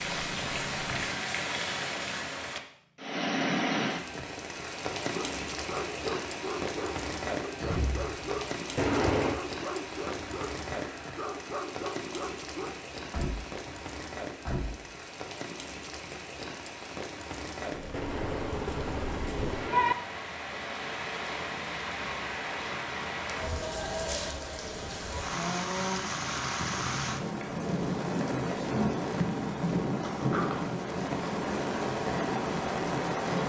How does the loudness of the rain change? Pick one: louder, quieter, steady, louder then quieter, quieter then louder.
quieter then louder.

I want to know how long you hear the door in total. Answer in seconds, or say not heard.
3 s.